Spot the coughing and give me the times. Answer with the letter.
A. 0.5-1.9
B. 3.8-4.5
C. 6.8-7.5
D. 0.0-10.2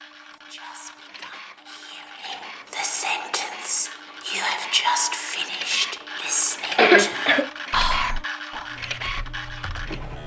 C.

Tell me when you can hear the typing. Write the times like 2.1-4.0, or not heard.
8.7-10.2.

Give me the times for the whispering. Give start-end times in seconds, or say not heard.
0.2-8.7.